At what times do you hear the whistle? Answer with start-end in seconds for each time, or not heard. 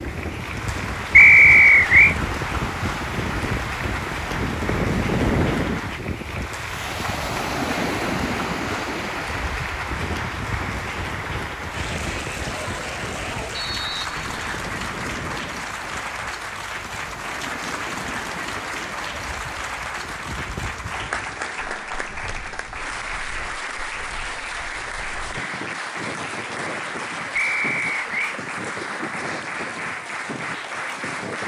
1.1-2.1, 13.5-14.5, 27.4-28.4.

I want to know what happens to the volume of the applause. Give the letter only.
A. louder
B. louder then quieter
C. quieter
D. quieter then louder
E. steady
E.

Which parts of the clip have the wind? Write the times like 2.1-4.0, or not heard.
0.0-31.4.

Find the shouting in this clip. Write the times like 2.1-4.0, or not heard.
not heard.